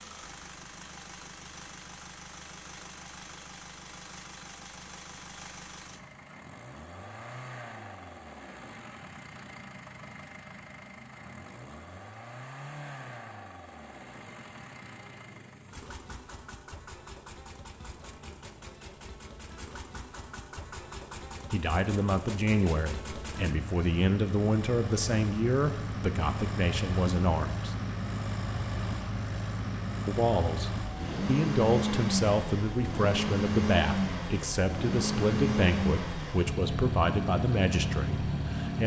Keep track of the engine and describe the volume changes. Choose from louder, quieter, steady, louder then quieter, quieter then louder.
louder.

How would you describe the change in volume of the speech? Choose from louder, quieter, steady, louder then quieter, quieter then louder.
steady.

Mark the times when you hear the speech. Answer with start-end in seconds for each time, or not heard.
21.5-27.8, 30.1-38.8.